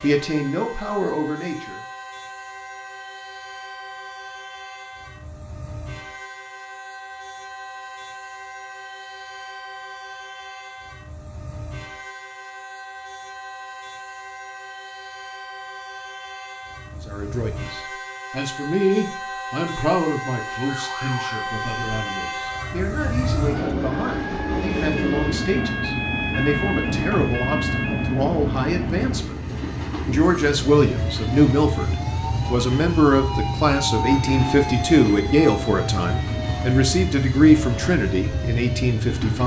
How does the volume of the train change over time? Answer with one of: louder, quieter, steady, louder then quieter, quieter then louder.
louder.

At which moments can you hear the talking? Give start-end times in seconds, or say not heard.
0.0-1.8, 17.0-29.4, 30.1-39.4.